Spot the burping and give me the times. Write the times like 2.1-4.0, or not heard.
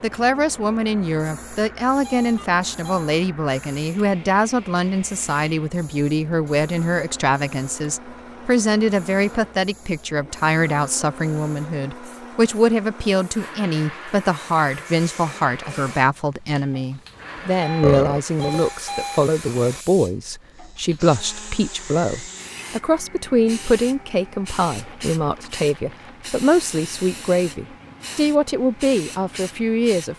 17.8-18.6.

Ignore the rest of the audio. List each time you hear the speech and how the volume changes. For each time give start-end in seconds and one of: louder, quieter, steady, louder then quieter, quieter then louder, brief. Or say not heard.
0.0-30.1 steady.